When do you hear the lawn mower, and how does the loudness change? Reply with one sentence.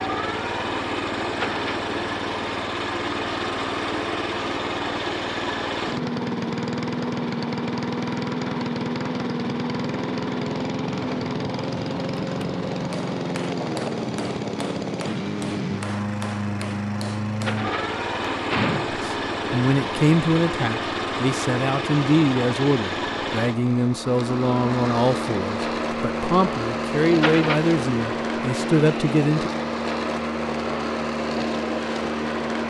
The lawn mower can be heard from 0.0 to 32.6 s, at a steady volume.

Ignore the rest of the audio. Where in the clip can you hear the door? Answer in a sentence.
You can hear the door from 1.3 to 1.9 s, from 17.4 to 19.0 s and from 27.1 to 27.7 s.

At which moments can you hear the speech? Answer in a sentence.
The speech can be heard from 18.9 to 29.5 s.